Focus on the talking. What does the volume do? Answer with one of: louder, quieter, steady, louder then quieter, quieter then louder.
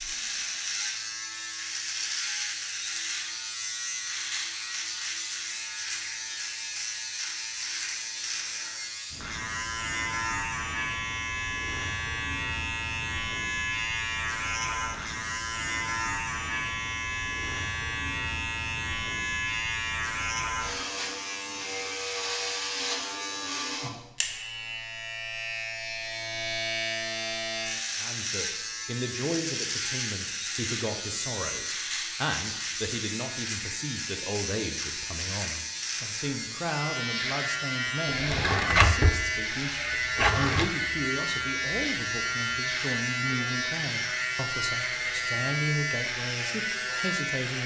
steady.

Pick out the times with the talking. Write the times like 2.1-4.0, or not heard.
27.9-47.6.